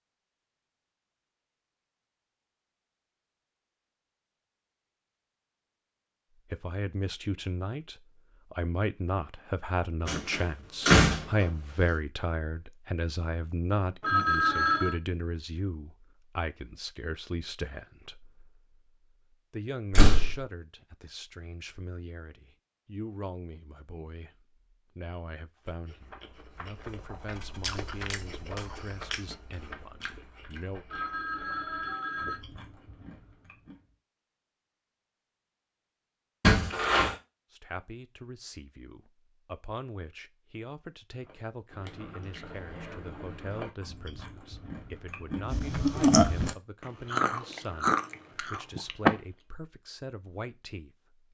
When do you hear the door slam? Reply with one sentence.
You can hear the door slam from 10.1 to 11.4 s, from 19.9 to 20.4 s and from 36.4 to 37.1 s.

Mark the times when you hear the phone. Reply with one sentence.
You can hear the phone from 14.0 to 15.0 s and from 30.9 to 32.4 s.